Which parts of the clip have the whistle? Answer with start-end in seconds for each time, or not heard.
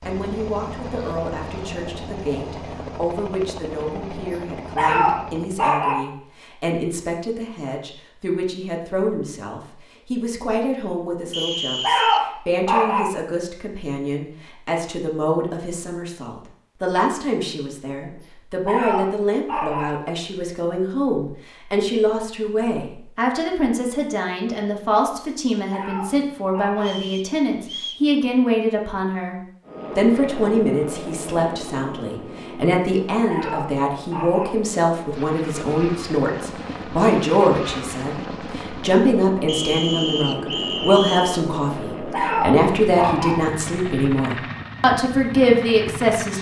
11.3-12.2, 26.8-28.1, 39.5-41.4.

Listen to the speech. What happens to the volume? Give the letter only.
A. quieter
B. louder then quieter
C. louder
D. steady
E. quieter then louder
C.